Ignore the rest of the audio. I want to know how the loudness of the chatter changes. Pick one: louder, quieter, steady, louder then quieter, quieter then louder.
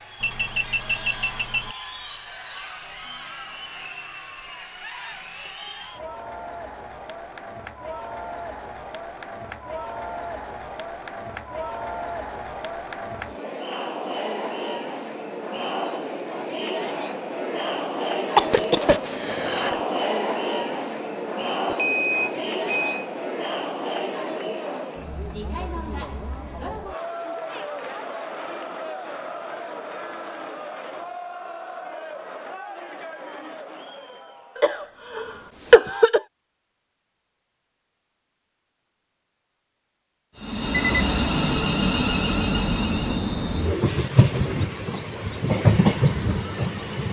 louder then quieter.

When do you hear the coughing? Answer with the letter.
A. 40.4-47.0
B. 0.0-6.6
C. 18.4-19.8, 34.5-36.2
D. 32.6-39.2
C.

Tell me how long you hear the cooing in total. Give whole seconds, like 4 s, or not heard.
not heard.